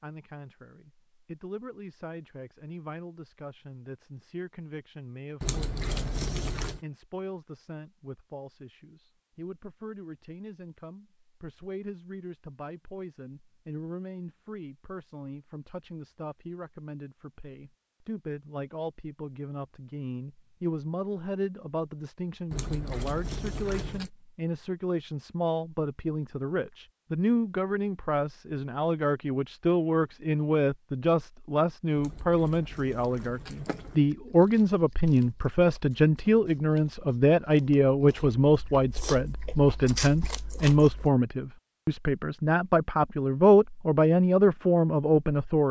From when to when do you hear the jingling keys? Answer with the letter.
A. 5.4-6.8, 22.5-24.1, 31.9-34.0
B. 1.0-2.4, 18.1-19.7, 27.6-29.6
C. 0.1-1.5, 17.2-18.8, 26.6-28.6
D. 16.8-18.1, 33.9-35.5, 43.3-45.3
A.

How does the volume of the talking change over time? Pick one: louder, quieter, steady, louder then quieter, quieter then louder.
louder.